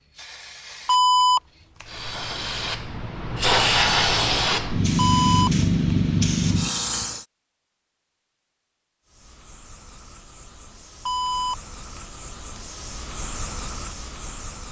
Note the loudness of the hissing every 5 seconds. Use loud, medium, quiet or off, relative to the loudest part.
loud, loud, quiet.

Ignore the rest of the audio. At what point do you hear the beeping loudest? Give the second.
1 s.